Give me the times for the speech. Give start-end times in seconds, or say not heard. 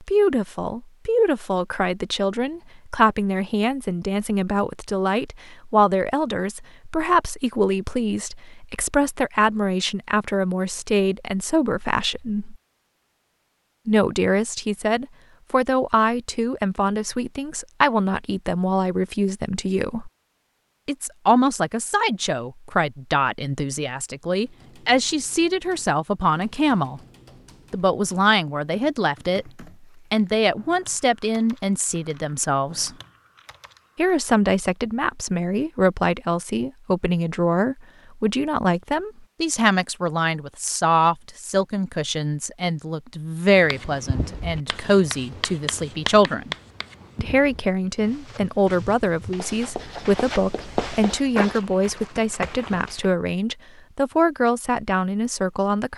0.0-12.6, 13.8-20.1, 20.9-27.0, 27.7-33.0, 34.0-46.5, 47.1-55.9.